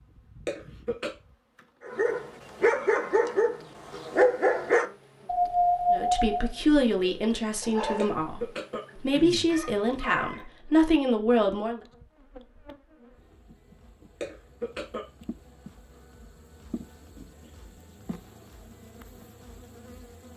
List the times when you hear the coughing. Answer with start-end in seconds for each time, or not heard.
0.5-1.1, 8.0-9.4, 14.2-15.1.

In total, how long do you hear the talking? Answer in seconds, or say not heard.
6 s.